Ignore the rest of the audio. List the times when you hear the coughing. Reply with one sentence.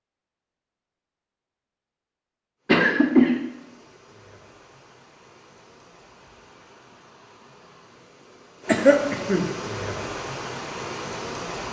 The coughing can be heard from 2.6 to 3.4 s and from 8.7 to 9.5 s.